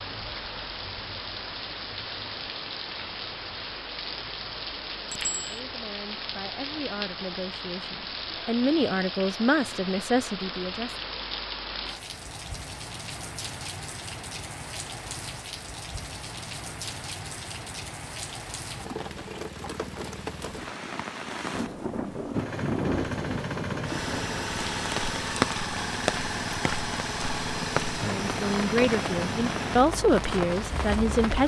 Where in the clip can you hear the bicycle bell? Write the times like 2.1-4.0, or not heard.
5.1-5.6.